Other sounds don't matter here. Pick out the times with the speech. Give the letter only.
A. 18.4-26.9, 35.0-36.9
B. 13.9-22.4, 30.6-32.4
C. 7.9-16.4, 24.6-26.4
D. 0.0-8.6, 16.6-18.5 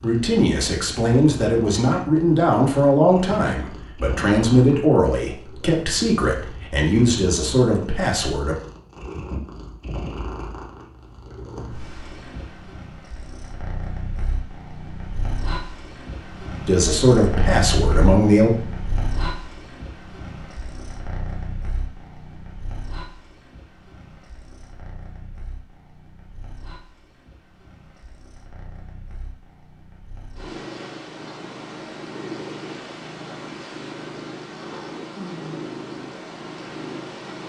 D.